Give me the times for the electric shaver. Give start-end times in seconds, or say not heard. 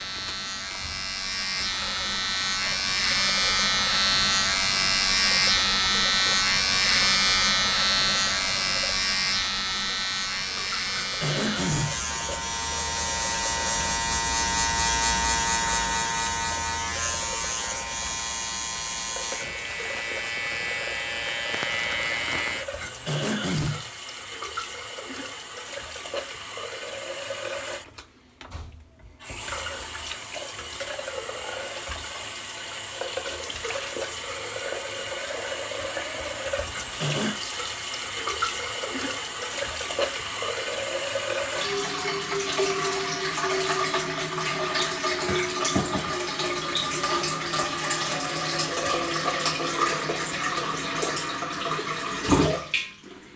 0.0-22.6.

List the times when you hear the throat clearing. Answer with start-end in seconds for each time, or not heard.
10.9-12.1, 22.8-23.9, 36.7-37.4.